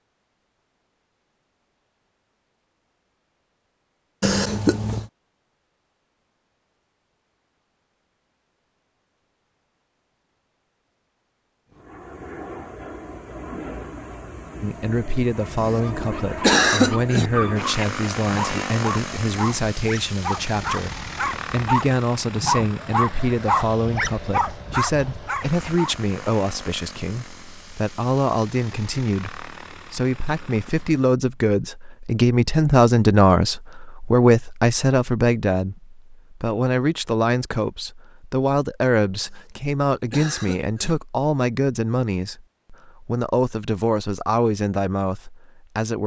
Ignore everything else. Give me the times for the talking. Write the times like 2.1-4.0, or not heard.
14.6-46.0.